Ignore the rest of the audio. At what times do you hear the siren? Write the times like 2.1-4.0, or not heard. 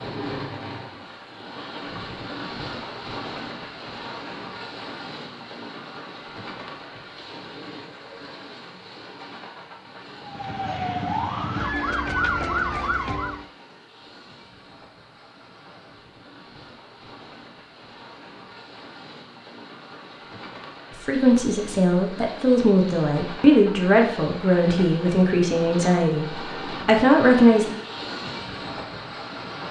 10.2-13.4.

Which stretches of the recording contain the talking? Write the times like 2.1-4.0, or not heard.
21.1-27.8.